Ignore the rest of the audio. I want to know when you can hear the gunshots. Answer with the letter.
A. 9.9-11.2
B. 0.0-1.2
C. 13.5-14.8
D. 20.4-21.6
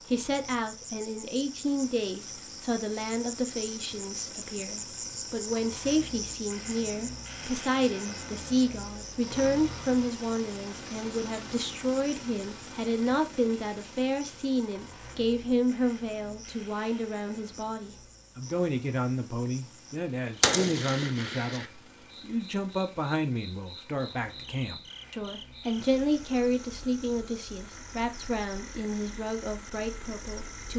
D.